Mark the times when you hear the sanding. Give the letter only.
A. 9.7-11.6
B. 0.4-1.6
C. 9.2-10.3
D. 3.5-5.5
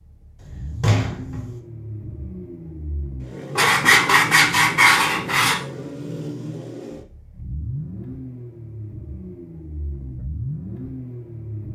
D.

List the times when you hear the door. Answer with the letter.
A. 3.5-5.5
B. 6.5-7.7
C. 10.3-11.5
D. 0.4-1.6
D.